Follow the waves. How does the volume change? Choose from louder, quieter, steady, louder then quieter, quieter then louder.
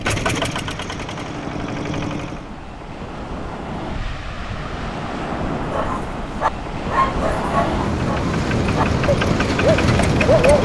louder.